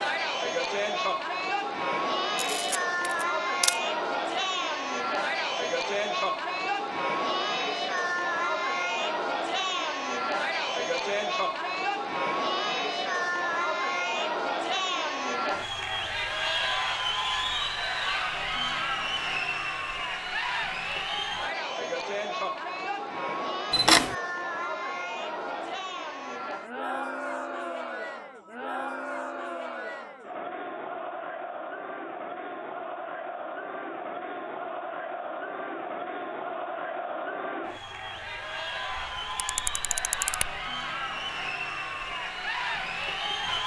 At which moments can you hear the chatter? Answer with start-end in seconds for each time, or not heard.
0.0-43.6.